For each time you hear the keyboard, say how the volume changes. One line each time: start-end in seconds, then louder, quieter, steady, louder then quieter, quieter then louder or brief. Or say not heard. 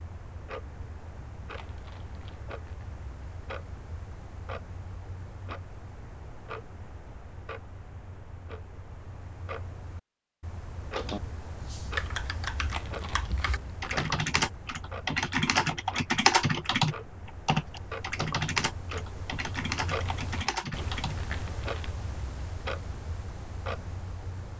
10.9-21.1 louder then quieter.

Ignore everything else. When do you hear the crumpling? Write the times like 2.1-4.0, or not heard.
1.6-2.9, 12.7-14.2, 20.1-22.0.